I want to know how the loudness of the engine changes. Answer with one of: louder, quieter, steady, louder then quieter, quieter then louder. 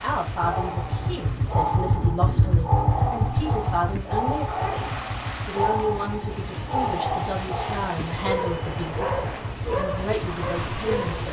quieter.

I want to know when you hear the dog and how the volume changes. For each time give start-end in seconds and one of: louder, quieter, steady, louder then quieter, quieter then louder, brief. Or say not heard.
0.4-11.2 steady.